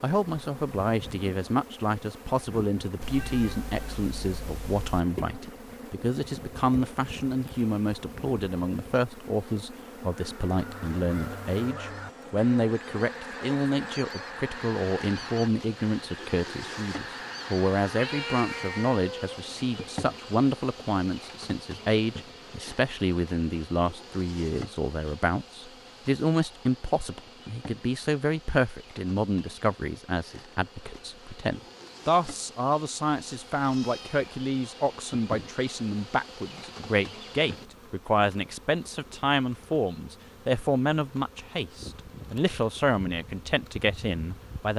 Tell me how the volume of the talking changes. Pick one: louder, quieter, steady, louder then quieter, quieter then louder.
steady.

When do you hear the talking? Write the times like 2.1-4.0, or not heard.
0.0-44.7.